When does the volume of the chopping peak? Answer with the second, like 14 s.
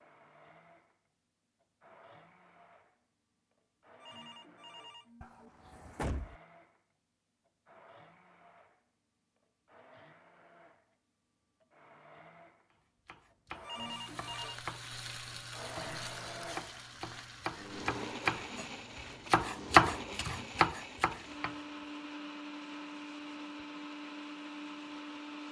20 s.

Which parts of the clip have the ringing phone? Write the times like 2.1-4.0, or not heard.
4.0-5.5, 13.6-14.6.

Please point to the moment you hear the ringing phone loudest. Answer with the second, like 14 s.
14 s.